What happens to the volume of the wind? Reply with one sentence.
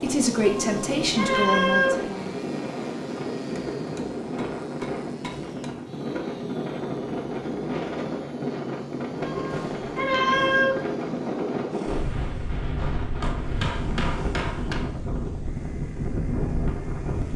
The volume of the wind stays about the same.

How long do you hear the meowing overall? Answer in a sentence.
The meowing can be heard for 3 seconds in total.